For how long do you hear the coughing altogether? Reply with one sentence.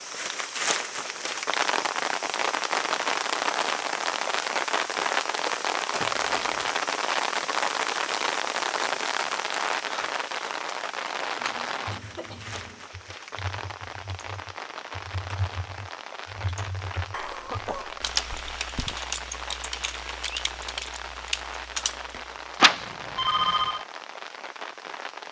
The coughing can be heard for 4 seconds in total.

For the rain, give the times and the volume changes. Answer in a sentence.
The rain can be heard from 0.0 to 25.2 s, getting quieter.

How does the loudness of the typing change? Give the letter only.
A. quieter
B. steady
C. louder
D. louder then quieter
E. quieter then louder
C.